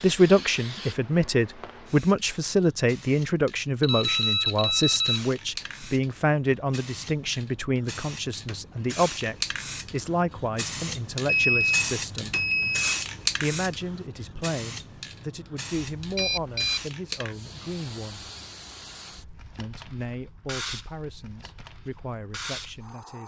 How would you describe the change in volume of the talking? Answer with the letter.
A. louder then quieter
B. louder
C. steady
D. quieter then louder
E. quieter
E.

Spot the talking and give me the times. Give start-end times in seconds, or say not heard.
0.0-12.3, 13.4-18.3, 19.6-23.2.